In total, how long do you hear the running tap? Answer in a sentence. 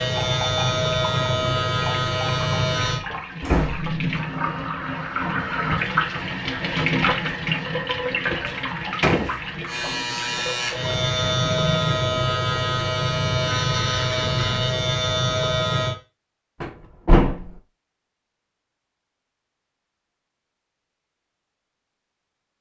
You can hear the running tap for 12 seconds altogether.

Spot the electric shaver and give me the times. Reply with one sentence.
The electric shaver can be heard from 0.0 to 3.0 s and from 9.7 to 15.9 s.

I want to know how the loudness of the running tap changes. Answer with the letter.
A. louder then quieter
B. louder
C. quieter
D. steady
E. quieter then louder
A.